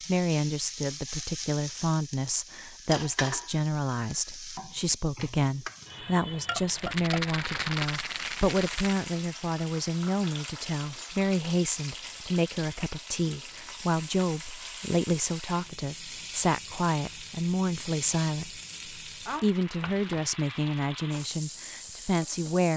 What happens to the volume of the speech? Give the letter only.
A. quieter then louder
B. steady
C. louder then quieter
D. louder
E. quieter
B.